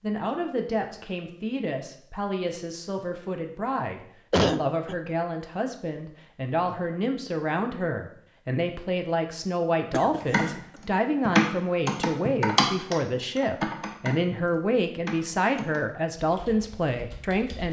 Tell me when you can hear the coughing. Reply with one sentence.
The coughing can be heard from 4.3 to 5.0 s and from 9.9 to 10.7 s.